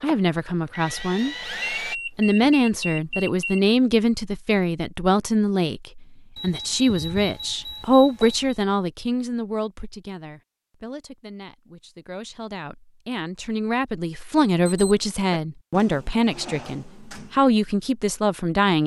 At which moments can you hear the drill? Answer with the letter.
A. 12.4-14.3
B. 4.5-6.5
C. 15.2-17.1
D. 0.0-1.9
D.